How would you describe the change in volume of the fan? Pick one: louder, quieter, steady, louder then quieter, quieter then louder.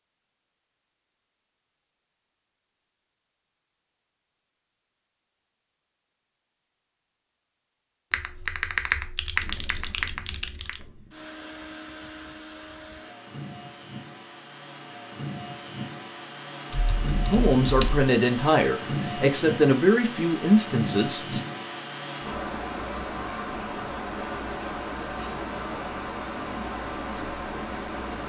louder.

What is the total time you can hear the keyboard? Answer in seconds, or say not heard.
4 s.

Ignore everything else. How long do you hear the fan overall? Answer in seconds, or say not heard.
19 s.